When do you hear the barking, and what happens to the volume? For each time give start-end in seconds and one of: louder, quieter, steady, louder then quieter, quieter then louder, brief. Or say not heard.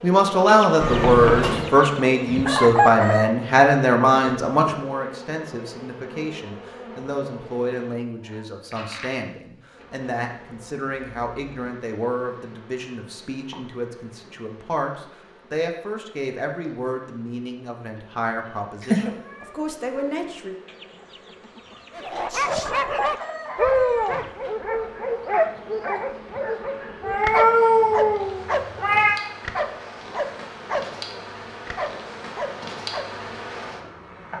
21.9-33.1 quieter.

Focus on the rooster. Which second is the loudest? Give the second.
3 s.